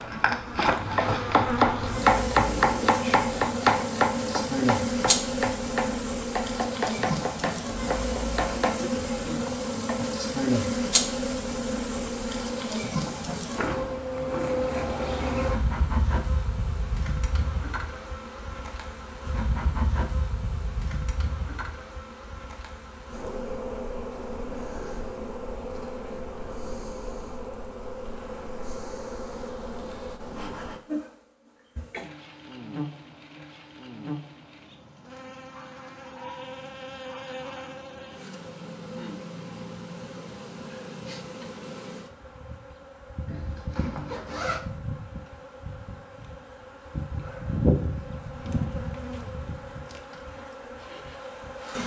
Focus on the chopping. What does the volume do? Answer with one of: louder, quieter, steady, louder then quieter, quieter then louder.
quieter.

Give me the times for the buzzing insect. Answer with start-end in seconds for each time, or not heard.
0.0-51.8.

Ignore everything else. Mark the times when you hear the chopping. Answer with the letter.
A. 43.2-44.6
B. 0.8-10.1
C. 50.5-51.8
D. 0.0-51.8
B.